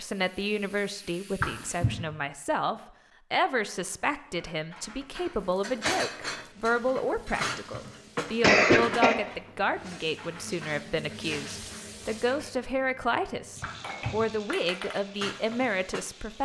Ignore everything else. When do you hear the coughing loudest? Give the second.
9 s.